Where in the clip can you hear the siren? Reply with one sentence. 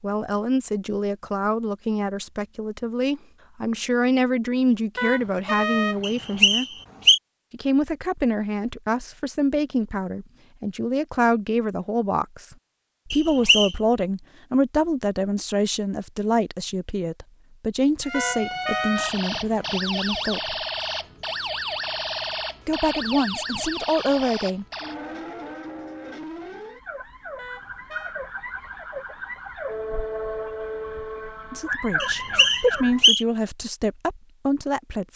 The siren can be heard from 18.0 to 33.1 s.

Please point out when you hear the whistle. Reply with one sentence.
You can hear the whistle from 6.0 to 7.2 s, from 13.1 to 13.8 s and from 32.0 to 33.2 s.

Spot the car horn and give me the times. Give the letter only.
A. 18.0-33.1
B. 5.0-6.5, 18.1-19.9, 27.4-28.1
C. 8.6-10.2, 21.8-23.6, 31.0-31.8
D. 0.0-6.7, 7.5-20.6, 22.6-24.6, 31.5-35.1
B.